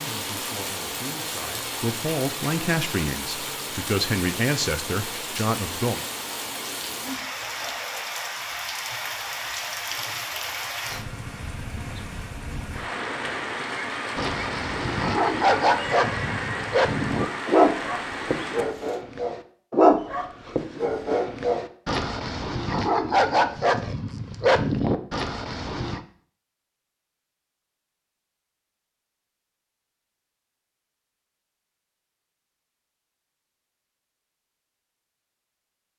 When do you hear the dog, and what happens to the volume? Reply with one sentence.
You can hear the dog from 14.2 to 26.0 s, at a steady volume.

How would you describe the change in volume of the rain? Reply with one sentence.
The volume of the rain stays about the same.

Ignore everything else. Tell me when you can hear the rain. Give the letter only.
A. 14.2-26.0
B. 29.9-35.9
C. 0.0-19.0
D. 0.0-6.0
C.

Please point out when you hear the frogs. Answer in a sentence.
The frogs can't be heard in this clip.